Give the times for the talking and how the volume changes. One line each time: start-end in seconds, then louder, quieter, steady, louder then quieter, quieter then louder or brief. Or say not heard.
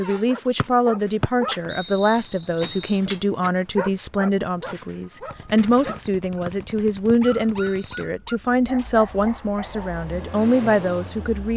0.0-11.5 steady.